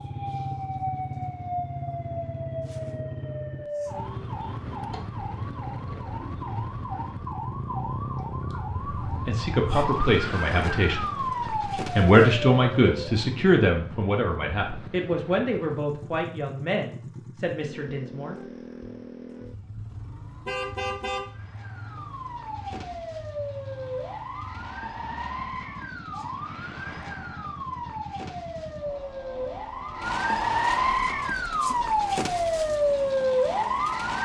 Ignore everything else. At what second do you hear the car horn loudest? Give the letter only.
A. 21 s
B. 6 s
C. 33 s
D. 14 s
A.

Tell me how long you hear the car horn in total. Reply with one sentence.
The car horn can be heard for 2 seconds in total.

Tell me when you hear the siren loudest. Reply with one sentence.
The loudest moment of the siren is at 33 seconds.